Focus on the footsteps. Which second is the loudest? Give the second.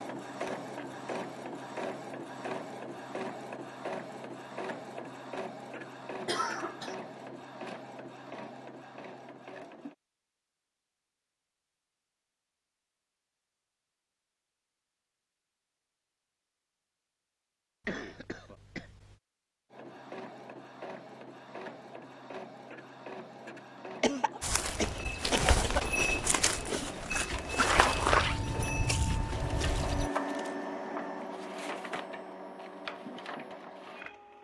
28 s.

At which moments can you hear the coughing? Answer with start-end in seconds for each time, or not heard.
6.2-7.0, 17.9-19.1, 24.0-25.9.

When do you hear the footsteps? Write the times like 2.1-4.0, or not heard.
24.4-30.1.